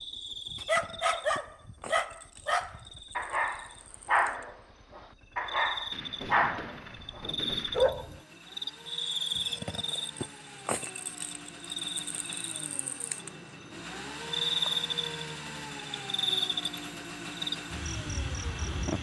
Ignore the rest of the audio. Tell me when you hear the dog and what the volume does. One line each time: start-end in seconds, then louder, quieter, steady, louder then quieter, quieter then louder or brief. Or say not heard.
0.5-8.2 steady.